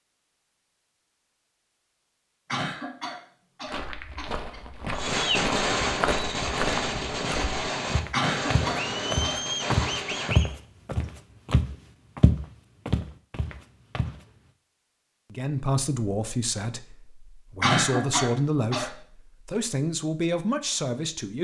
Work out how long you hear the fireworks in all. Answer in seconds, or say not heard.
6 s.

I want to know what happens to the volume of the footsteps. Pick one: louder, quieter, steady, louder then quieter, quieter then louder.
louder.